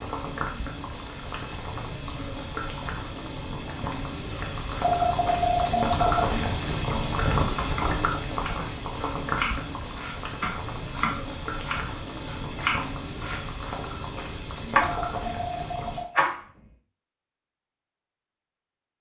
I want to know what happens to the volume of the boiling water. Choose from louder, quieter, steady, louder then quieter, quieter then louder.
louder then quieter.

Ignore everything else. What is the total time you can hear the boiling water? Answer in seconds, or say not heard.
16 s.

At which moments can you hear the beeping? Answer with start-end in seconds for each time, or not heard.
4.8-6.2, 15.0-16.2.